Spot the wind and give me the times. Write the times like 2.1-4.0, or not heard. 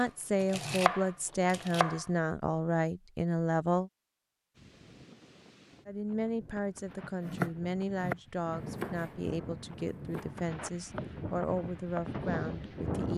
4.5-13.1.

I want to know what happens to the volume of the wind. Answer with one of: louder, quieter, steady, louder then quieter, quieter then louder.
louder.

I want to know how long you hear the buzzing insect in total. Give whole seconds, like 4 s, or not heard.
not heard.